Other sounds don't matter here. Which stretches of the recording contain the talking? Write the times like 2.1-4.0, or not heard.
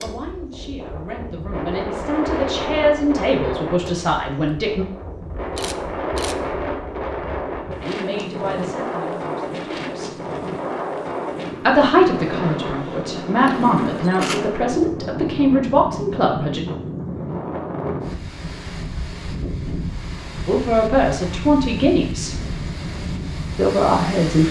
0.0-4.8, 7.8-10.2, 11.7-16.6, 20.4-22.4, 23.6-24.4.